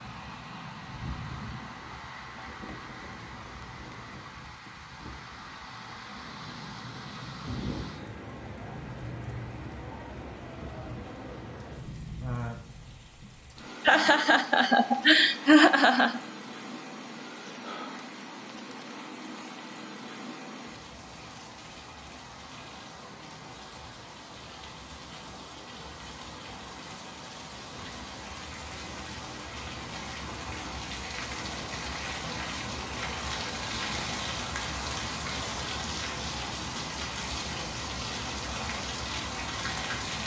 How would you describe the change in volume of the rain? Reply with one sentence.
The volume of the rain goes up.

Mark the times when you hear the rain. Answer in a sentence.
You can hear the rain from 0.0 to 40.2 s.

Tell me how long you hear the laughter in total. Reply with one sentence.
The laughter can be heard for 2 seconds in total.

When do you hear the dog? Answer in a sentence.
You can't hear the dog here.